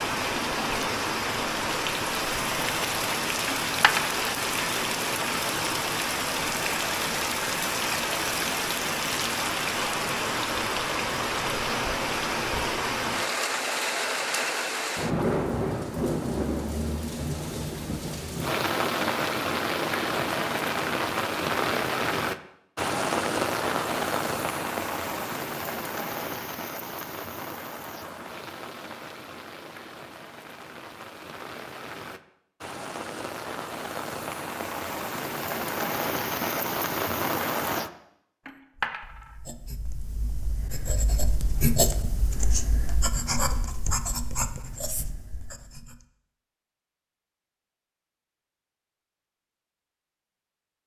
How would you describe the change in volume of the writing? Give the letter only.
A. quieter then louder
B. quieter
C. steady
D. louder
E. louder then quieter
E.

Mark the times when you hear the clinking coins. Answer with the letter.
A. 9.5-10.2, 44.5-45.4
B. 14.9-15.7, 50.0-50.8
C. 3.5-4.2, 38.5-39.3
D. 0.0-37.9
C.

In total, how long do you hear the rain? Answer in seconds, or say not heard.
38 s.